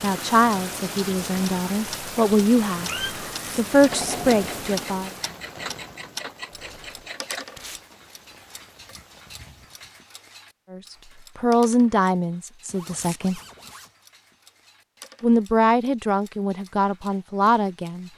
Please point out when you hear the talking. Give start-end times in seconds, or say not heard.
0.0-2.9, 3.5-5.1, 10.7-13.4, 15.2-18.1.